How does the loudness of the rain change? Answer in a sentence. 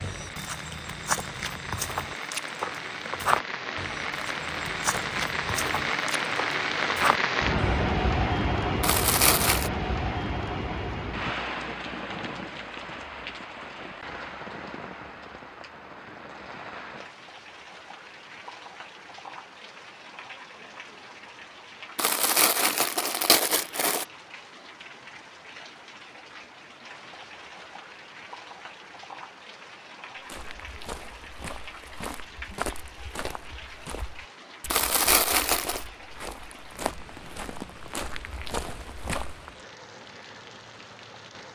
The loudness of the rain goes down.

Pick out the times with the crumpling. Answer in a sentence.
You can hear the crumpling from 8.8 to 9.7 s, from 21.9 to 24.1 s and from 34.7 to 35.9 s.